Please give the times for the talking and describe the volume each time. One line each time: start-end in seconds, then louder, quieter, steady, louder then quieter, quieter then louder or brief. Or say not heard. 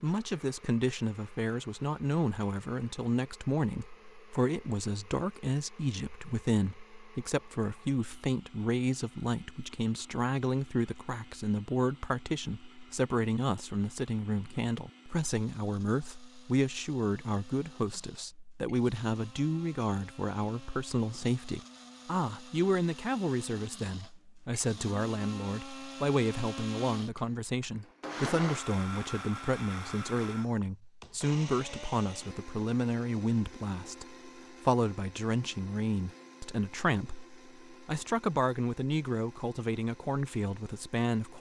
0.0-41.3 steady.